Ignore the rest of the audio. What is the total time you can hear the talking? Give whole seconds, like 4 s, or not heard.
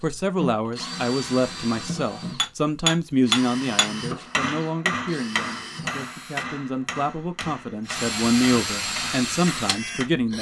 10 s.